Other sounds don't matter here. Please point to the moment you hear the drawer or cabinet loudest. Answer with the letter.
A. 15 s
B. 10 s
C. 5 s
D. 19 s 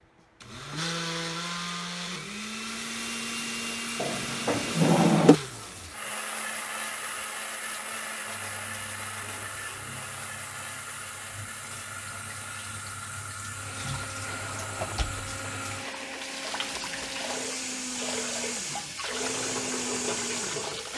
C.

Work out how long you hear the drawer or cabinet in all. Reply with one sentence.
The drawer or cabinet can be heard for 2 seconds in total.